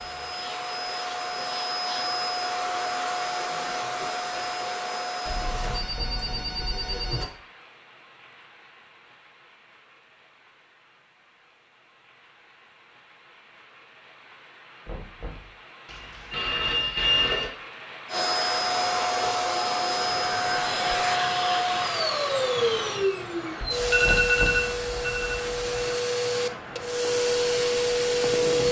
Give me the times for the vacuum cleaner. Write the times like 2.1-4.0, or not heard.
0.0-5.8, 18.1-28.6.